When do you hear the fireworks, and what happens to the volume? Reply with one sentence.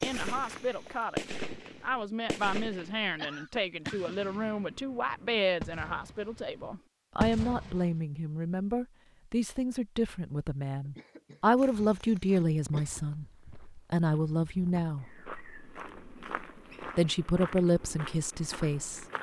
The fireworks can be heard from 0.0 to 8.0 s, getting quieter then louder.